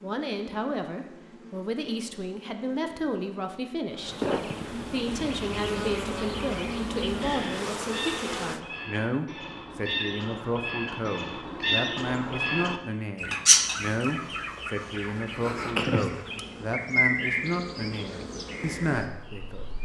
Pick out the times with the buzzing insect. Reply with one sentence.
You can hear the buzzing insect from 0.0 to 8.6 s and from 14.8 to 19.8 s.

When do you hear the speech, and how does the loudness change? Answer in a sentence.
You can hear the speech from 0.0 to 19.6 s, at a steady volume.